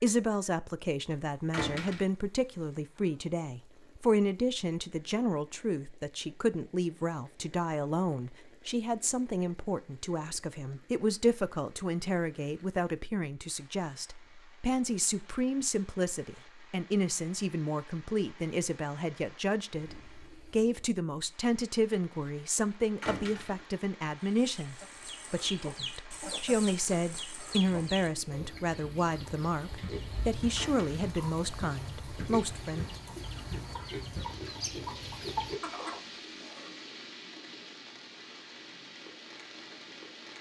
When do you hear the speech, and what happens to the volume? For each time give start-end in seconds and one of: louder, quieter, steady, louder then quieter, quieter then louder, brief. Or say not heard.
0.0-32.9 steady.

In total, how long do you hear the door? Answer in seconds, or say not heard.
2 s.